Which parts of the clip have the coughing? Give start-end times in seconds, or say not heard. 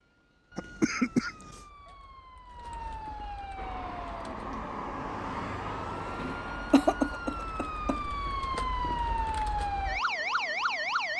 0.6-1.6, 6.2-8.0.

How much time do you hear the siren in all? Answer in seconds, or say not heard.
11 s.